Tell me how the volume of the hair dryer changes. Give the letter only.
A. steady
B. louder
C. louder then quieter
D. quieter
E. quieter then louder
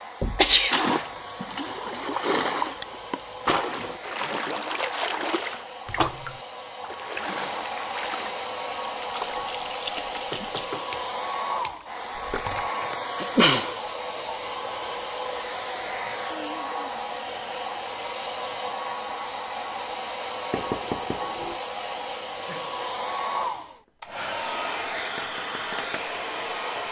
B.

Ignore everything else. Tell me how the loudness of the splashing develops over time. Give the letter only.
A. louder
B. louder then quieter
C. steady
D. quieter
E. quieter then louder
D.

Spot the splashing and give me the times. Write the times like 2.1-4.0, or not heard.
0.7-12.7.